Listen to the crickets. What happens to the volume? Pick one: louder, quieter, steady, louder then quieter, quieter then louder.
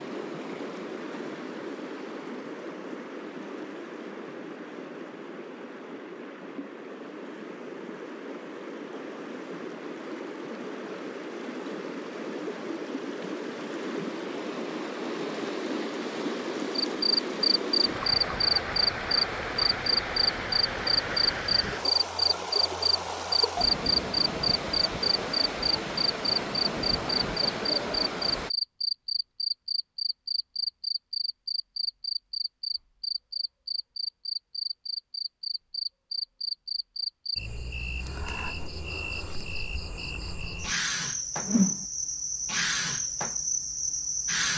quieter.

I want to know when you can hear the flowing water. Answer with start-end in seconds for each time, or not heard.
0.0-28.5.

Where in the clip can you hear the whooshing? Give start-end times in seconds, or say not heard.
41.4-41.9.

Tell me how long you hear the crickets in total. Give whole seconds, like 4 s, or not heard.
28 s.